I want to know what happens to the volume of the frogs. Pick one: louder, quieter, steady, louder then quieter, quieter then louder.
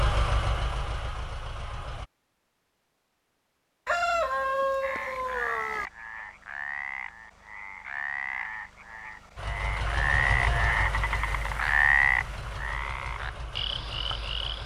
louder then quieter.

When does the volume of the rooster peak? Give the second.
4 s.